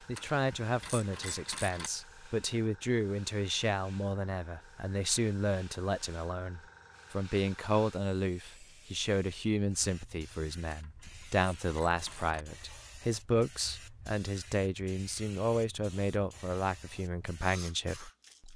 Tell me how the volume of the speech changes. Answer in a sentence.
The loudness of the speech stays about the same.